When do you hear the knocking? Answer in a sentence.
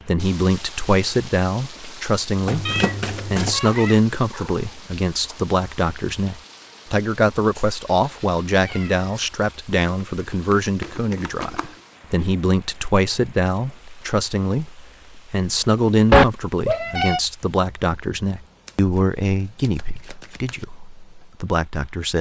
You can't hear the knocking here.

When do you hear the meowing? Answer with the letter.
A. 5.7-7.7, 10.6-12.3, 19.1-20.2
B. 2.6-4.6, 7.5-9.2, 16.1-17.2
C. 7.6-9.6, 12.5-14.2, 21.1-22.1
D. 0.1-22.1
B.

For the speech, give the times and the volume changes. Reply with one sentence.
You can hear the speech from 0.1 to 22.1 s, at a steady volume.